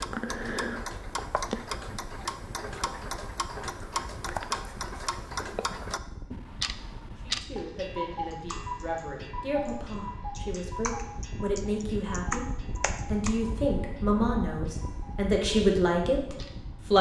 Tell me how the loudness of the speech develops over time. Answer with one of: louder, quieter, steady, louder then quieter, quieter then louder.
louder.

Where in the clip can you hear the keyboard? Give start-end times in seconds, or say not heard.
8.3-9.1, 9.7-13.3.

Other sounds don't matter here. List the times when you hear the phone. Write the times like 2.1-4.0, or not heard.
not heard.